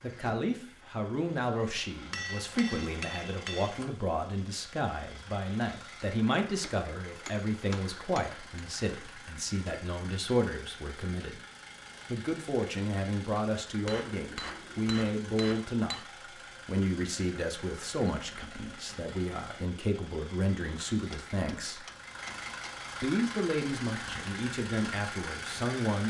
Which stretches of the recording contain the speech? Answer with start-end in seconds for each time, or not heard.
0.0-11.4, 12.1-16.1, 16.6-21.9, 23.0-26.0.